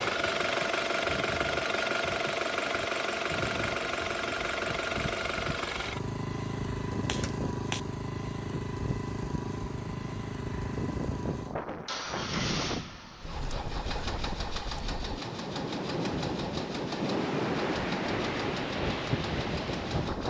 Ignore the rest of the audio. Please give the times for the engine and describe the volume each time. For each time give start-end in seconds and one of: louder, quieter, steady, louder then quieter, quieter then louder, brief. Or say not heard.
0.0-20.2 quieter.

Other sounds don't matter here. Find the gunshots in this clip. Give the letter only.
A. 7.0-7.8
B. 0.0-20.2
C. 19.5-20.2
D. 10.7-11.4
A.